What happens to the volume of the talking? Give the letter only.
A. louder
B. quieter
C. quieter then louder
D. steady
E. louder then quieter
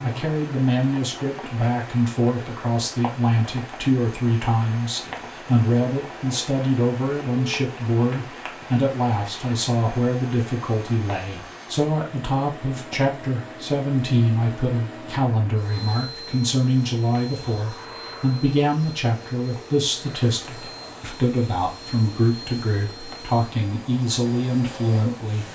D.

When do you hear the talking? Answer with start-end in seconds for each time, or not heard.
0.0-25.4.